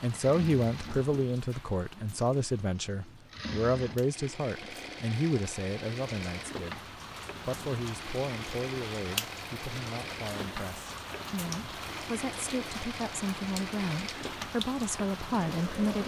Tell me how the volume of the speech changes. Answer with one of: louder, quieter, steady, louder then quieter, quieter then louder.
quieter then louder.